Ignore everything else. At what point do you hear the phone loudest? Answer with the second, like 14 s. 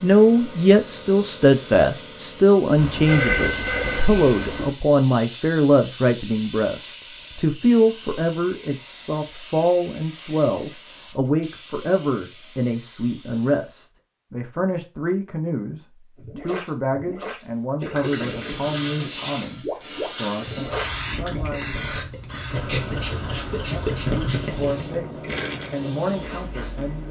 3 s.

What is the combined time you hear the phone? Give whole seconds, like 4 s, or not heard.
2 s.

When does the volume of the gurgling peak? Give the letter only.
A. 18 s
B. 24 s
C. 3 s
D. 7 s
B.